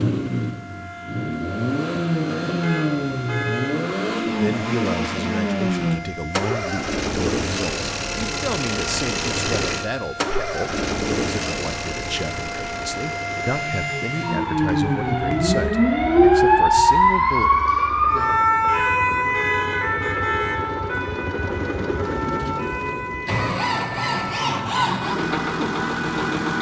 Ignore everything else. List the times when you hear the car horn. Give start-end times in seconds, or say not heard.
2.6-3.8, 18.6-20.6.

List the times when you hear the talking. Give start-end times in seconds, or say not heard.
4.3-17.5.